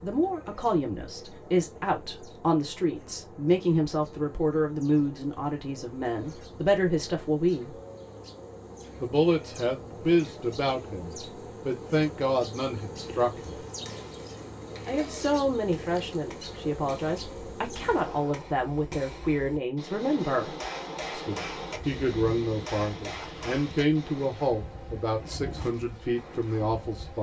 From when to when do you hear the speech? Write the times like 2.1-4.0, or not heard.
0.0-7.8, 9.0-13.6, 14.8-27.1.